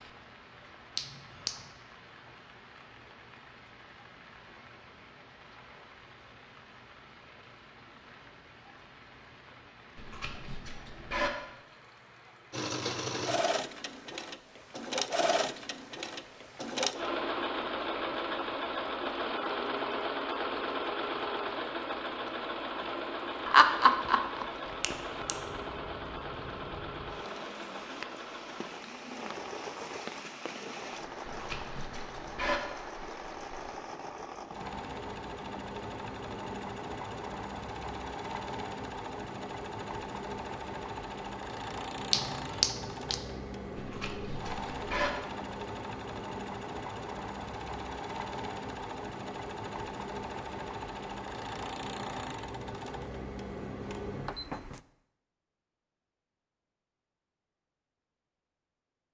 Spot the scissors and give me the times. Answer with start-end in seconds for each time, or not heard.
9.9-11.3, 31.2-32.6, 43.8-45.1.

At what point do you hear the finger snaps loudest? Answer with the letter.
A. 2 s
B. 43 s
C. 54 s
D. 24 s
D.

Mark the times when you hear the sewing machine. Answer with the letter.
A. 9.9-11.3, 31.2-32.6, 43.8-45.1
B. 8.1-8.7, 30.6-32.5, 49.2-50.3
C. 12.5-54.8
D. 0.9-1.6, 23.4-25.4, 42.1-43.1
C.